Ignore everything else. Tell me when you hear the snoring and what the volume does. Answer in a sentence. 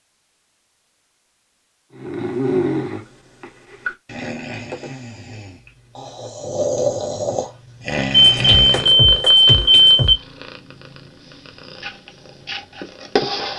You can hear the snoring from 1.9 to 8.9 s, getting quieter then louder.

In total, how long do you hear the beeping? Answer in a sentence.
You can hear the beeping for 2 seconds altogether.